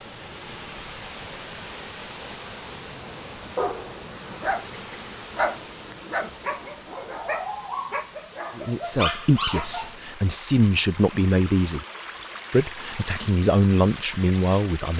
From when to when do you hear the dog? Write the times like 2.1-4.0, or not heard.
3.5-9.9.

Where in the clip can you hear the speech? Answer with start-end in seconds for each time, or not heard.
8.6-11.8, 12.5-14.9.